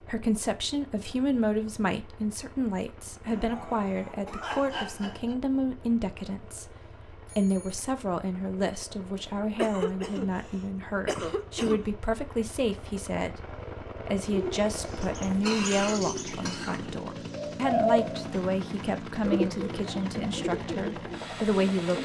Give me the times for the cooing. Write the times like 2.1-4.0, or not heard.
14.2-22.0.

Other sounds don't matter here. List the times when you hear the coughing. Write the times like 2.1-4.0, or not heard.
3.2-5.3, 9.2-11.9, 14.8-16.8.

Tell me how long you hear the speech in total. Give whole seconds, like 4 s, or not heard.
21 s.